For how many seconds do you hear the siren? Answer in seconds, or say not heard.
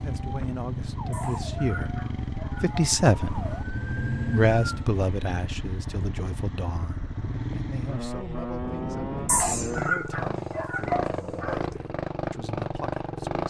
5 s.